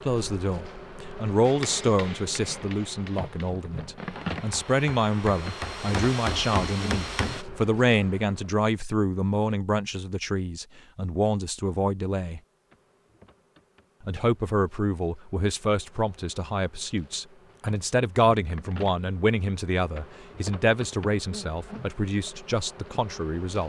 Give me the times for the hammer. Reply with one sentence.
The hammer can be heard from 1.4 to 7.5 s.